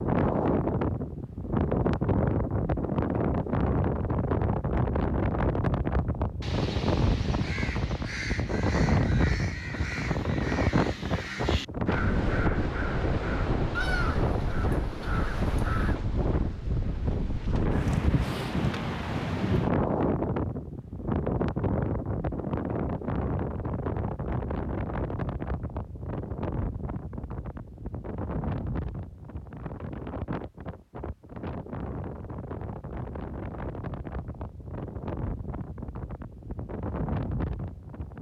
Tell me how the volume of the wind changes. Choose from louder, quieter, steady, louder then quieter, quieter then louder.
quieter.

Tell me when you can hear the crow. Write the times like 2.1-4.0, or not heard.
6.4-16.0.